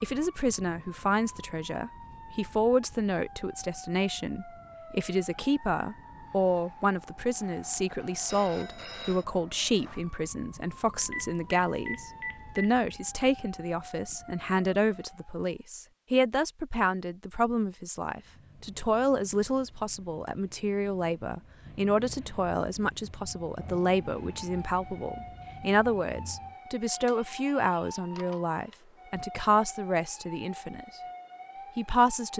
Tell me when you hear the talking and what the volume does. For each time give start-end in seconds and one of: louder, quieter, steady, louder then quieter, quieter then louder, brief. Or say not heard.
0.0-31.0 steady
31.8-32.3 brief.